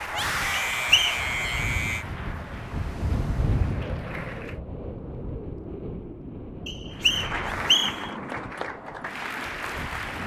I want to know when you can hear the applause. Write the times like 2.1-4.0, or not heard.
0.0-4.6, 6.9-10.2.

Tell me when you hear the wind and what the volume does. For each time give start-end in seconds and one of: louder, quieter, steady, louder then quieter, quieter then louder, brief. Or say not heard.
0.0-10.2 louder then quieter.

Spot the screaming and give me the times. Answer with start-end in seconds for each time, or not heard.
0.1-2.0, 7.3-8.1.